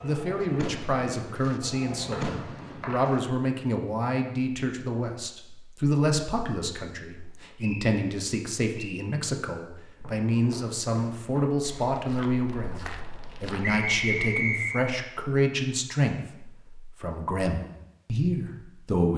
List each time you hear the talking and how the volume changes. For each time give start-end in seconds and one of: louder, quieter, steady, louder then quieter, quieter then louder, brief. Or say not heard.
0.0-19.1 steady.